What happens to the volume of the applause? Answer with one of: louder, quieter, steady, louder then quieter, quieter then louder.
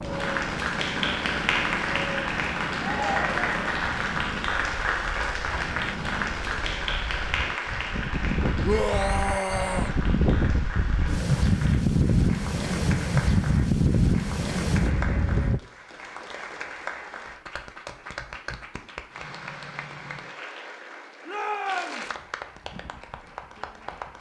quieter.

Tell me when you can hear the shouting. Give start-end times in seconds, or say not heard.
2.8-3.5, 8.6-9.9, 21.2-22.1.